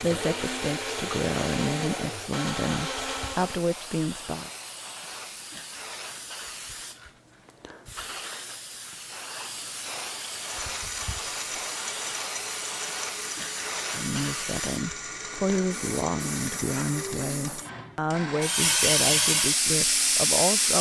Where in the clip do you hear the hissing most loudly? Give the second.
19 s.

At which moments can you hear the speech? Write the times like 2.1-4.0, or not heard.
0.0-4.5, 13.9-20.7.